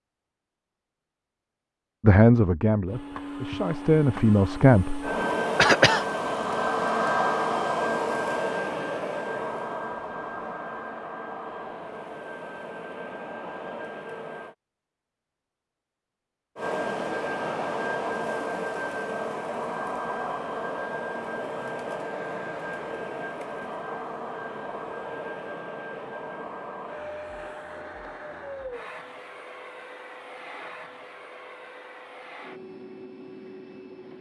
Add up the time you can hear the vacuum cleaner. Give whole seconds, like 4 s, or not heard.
29 s.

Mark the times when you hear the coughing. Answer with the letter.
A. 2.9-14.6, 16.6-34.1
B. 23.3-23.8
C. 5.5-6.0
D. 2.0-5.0
C.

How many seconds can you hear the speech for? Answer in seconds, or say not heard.
3 s.